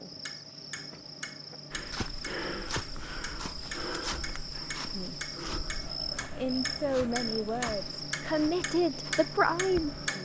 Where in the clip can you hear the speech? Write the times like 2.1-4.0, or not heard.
6.3-10.2.